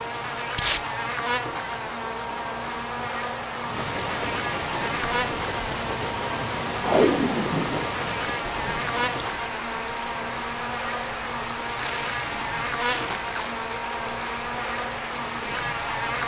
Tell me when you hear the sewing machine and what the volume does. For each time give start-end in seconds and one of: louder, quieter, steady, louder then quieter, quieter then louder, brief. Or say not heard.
not heard.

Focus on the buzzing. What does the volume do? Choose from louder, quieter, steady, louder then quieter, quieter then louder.
steady.